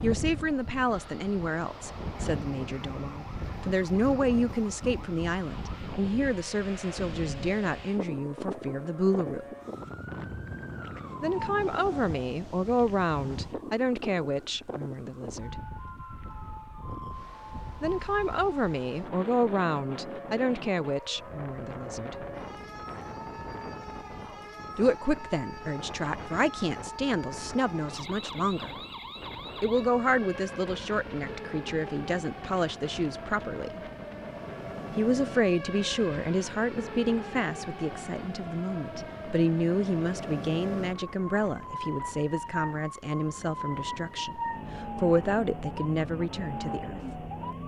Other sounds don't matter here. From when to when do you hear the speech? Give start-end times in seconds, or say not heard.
0.0-9.4, 11.2-15.6, 17.8-22.1, 24.8-28.7, 29.6-33.8, 35.0-47.0.